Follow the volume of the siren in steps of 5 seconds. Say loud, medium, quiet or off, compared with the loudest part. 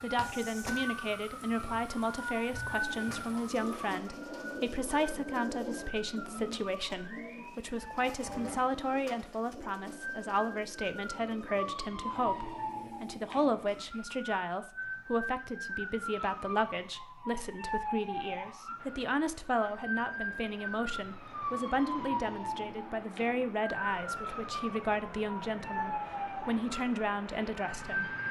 loud, medium, loud, loud, loud, loud.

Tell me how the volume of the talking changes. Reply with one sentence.
The volume of the talking stays about the same.